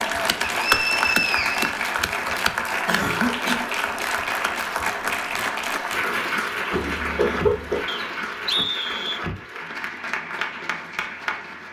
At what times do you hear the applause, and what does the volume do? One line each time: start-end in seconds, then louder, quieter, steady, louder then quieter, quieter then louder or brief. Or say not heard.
0.0-11.6 quieter.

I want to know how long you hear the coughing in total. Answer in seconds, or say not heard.
2 s.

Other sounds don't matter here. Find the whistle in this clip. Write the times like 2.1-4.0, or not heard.
0.4-1.7, 7.8-9.2.